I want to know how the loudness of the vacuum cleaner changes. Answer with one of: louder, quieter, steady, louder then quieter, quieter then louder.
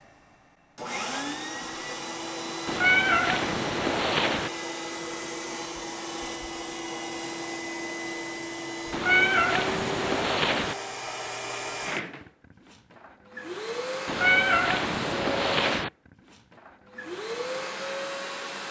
steady.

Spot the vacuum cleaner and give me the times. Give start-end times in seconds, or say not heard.
0.0-18.6.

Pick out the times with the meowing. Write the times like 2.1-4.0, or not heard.
2.6-4.5, 8.9-10.8, 14.1-15.9.